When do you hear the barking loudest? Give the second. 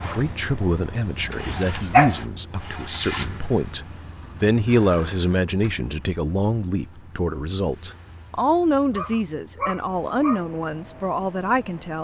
2 s.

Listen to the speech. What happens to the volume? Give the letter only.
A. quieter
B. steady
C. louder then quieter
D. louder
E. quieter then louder
B.